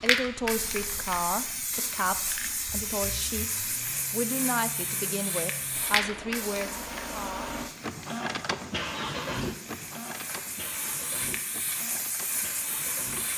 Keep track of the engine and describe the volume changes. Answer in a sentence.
The volume of the engine goes up, then down.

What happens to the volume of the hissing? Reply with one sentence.
The loudness of the hissing goes down, then up.